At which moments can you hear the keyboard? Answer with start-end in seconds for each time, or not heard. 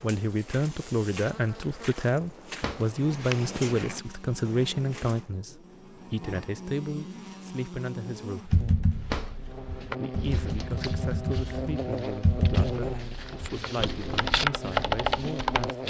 8.5-15.8.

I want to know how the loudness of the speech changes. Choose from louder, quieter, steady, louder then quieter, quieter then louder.
quieter.